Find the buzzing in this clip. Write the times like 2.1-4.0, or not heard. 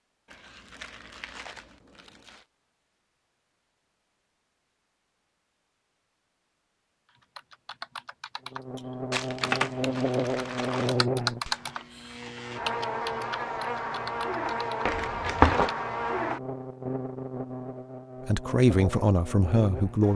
8.5-20.1.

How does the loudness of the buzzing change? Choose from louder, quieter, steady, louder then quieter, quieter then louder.
quieter.